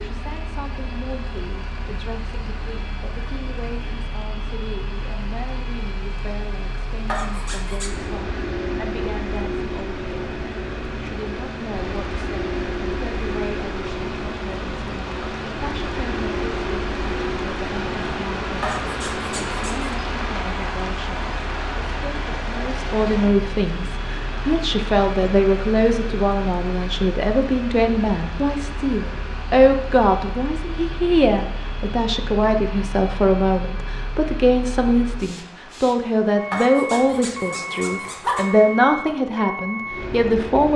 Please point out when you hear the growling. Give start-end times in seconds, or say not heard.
7.0-8.0, 18.6-19.9, 36.5-38.5.